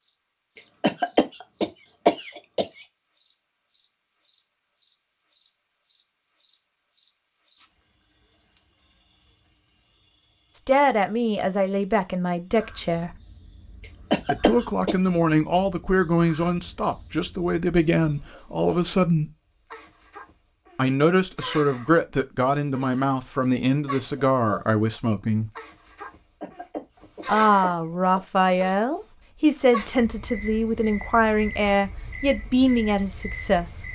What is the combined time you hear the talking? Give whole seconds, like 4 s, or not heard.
19 s.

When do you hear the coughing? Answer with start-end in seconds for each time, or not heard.
0.6-2.9, 14.1-14.9, 26.4-28.2.